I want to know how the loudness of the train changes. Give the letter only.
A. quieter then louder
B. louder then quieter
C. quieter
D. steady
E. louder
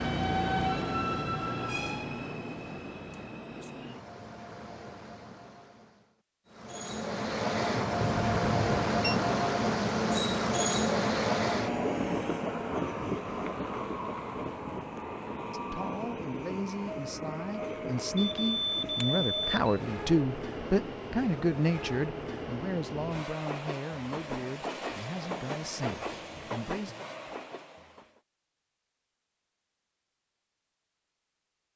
B.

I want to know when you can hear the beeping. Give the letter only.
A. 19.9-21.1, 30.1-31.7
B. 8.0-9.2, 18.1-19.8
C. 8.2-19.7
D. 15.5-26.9
B.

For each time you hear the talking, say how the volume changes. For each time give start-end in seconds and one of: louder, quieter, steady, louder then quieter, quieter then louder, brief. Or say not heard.
15.5-26.9 louder then quieter.